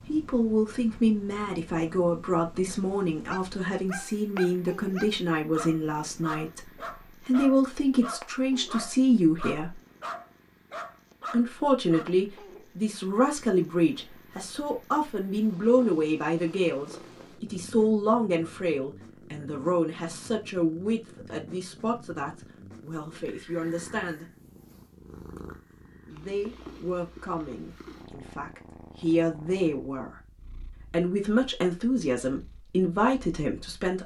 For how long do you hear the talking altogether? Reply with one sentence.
You can hear the talking for 30 seconds altogether.